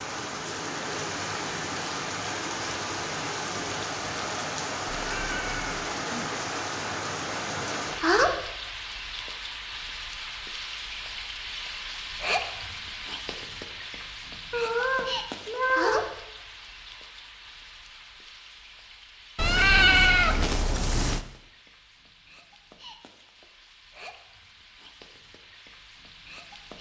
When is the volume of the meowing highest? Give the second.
20 s.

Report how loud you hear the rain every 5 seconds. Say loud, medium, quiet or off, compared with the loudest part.
loud, loud, medium, medium, quiet, quiet.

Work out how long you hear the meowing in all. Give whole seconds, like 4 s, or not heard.
4 s.